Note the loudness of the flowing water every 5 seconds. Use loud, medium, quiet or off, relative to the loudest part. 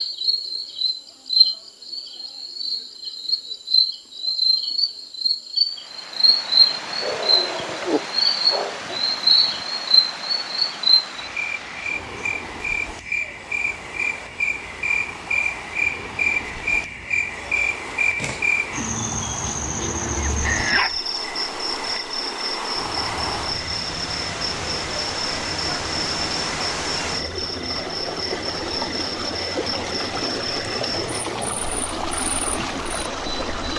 off, medium, medium, medium, loud, loud, loud.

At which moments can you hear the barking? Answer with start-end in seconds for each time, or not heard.
7.0-9.0, 19.4-20.9.